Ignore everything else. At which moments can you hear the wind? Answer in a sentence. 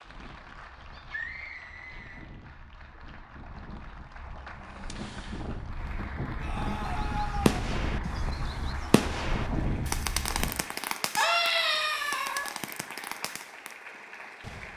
You can hear the wind from 0.0 to 10.6 s.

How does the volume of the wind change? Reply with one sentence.
The loudness of the wind goes up.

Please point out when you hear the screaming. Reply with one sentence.
The screaming can be heard from 0.9 to 2.2 s, from 6.3 to 7.7 s and from 11.2 to 12.5 s.